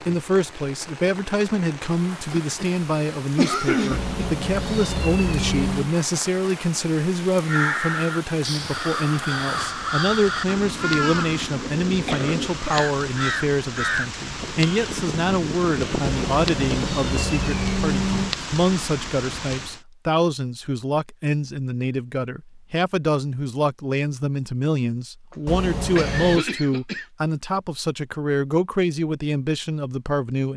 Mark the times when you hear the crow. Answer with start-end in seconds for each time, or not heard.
7.4-17.4.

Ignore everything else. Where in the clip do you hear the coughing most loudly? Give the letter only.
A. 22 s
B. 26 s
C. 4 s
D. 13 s
C.